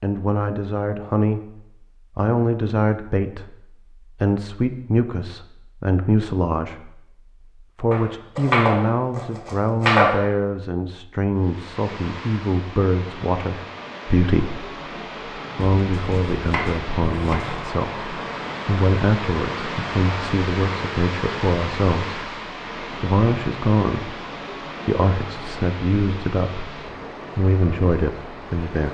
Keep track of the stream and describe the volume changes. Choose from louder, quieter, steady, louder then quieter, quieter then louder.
louder then quieter.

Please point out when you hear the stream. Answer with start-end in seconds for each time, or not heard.
11.3-28.8.